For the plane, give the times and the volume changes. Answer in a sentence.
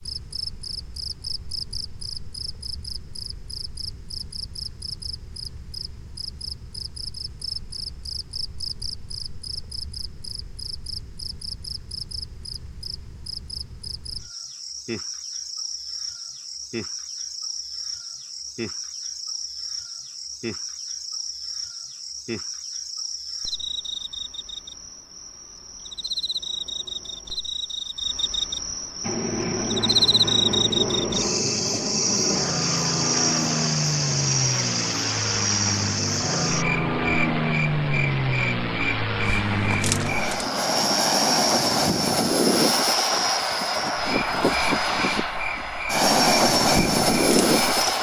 The plane can be heard from 29.0 to 47.9 s, getting louder.